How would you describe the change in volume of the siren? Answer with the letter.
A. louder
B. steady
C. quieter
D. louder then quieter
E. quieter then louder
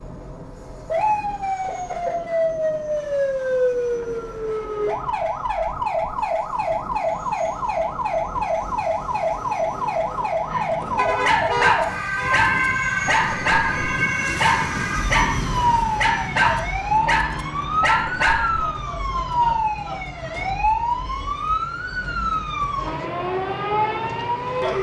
B.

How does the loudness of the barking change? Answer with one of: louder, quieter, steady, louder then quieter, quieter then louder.
steady.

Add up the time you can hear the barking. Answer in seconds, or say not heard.
8 s.